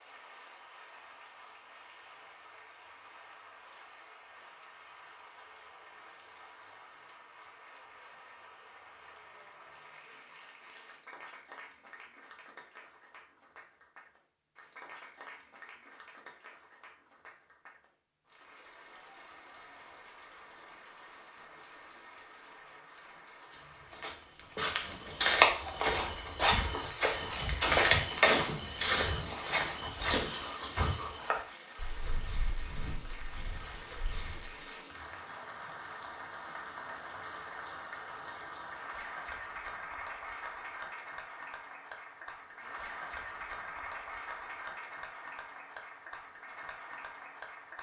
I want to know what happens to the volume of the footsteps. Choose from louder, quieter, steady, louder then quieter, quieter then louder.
quieter.